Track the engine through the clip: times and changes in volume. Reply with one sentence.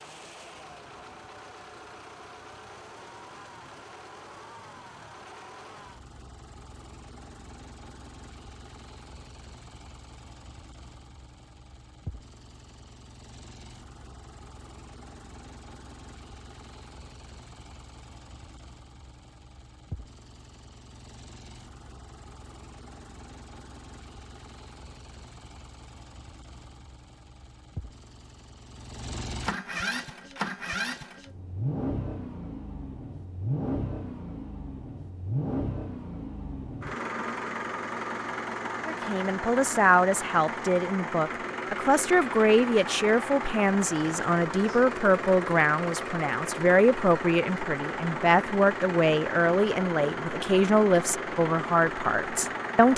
The engine can be heard from 0.0 to 52.9 s, getting louder.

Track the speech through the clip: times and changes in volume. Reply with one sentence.
You can hear the speech from 38.9 to 52.9 s, at a steady volume.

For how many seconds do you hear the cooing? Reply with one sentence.
The cooing can't be heard in this clip.